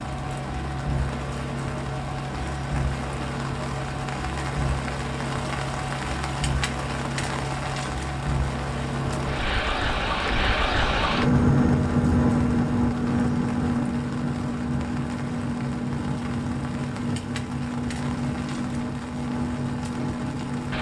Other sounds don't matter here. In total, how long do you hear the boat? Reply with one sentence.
You can hear the boat for 21 seconds altogether.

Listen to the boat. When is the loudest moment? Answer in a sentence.
The volume of the boat peaks at 12 seconds.